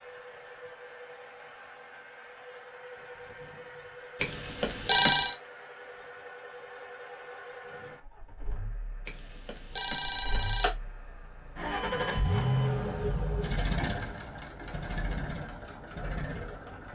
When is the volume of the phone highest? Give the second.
5 s.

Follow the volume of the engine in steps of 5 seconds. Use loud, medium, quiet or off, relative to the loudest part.
quiet, quiet, loud, medium.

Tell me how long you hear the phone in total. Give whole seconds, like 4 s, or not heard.
3 s.